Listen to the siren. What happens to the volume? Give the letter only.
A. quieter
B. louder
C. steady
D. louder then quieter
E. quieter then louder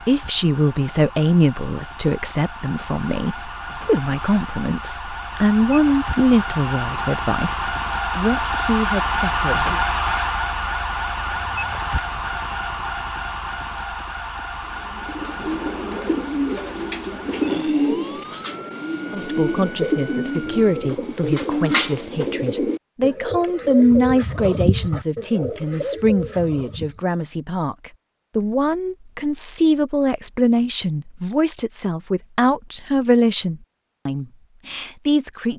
D.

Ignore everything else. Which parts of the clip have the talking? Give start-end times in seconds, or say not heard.
0.1-9.8, 19.1-35.5.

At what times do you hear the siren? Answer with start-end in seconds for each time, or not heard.
0.0-20.9.